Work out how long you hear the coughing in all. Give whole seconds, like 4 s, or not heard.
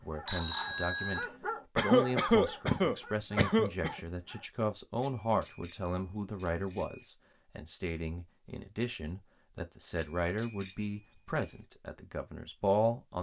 2 s.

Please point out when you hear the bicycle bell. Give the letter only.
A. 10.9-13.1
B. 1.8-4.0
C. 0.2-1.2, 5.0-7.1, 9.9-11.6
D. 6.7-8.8
C.